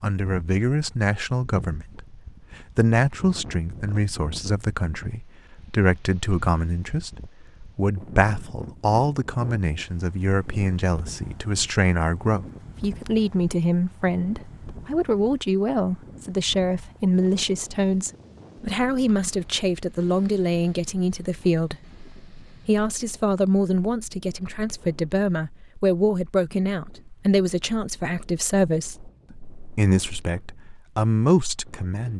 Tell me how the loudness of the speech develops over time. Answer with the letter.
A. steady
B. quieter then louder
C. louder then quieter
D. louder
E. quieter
A.